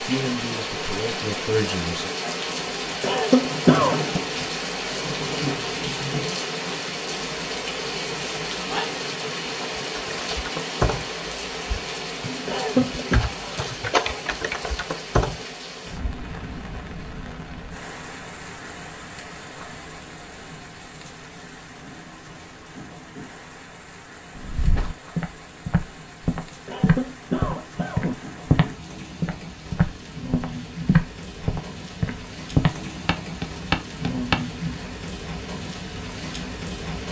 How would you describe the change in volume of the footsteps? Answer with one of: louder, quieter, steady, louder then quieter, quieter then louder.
louder.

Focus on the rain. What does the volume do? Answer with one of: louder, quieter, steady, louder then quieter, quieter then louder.
quieter then louder.